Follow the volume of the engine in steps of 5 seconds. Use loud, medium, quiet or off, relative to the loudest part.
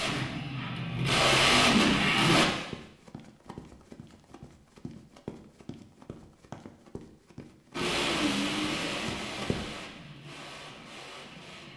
loud, medium, quiet.